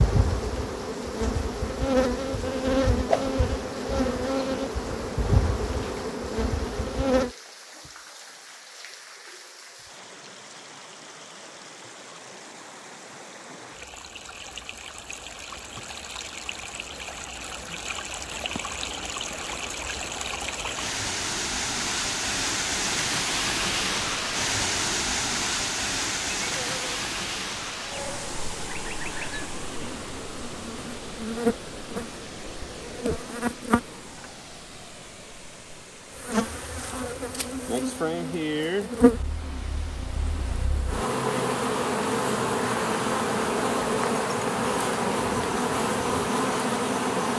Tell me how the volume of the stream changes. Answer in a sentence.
The volume of the stream goes up, then down.